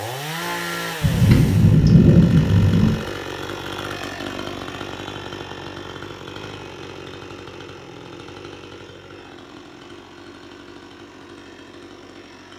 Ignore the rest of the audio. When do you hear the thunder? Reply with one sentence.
You can hear the thunder from 1.0 to 3.0 s.